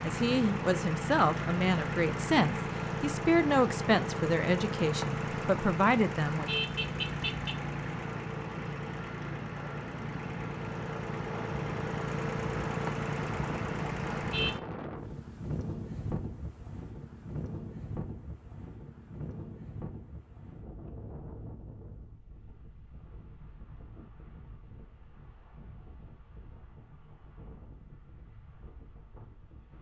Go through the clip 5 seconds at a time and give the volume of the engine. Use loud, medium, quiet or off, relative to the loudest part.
loud, loud, loud, off, off, off.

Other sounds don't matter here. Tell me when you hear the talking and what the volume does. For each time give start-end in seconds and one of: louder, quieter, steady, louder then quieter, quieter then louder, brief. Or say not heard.
0.0-6.5 steady.